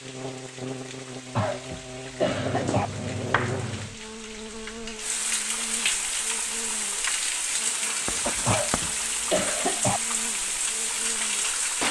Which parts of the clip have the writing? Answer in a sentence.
The writing can be heard from 2.3 to 4.0 s and from 8.1 to 8.9 s.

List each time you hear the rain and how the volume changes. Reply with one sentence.
The rain can be heard from 0.0 to 11.8 s, getting louder.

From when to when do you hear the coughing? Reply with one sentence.
You can hear the coughing from 1.4 to 2.9 s and from 8.4 to 10.0 s.